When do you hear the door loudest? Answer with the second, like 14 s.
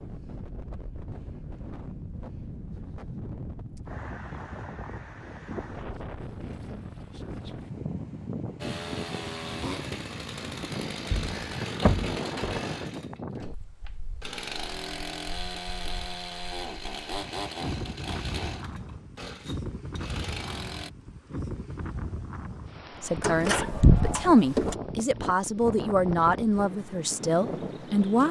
24 s.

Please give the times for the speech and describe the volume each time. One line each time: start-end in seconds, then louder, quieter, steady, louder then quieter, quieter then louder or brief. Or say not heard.
23.0-28.2 louder then quieter.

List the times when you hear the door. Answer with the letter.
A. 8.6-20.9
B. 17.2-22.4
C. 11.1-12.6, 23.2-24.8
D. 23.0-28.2
C.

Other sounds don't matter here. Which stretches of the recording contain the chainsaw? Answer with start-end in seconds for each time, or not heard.
8.6-20.9.